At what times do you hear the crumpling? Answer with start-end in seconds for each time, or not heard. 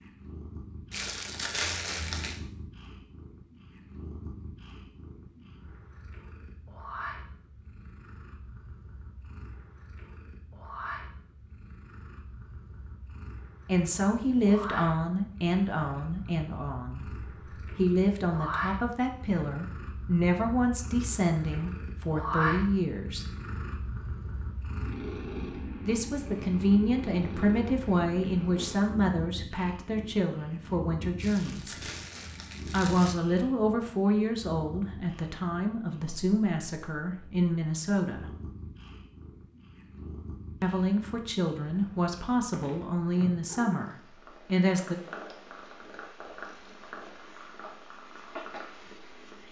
0.9-2.4, 31.1-33.1.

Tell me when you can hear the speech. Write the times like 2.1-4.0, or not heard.
13.7-23.2, 25.9-31.8, 32.6-38.4, 40.6-45.0.